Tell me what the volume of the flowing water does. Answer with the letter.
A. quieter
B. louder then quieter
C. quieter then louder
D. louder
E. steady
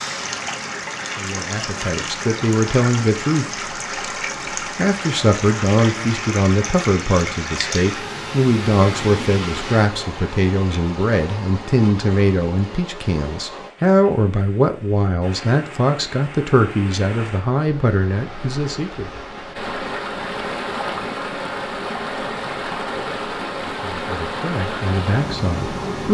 C.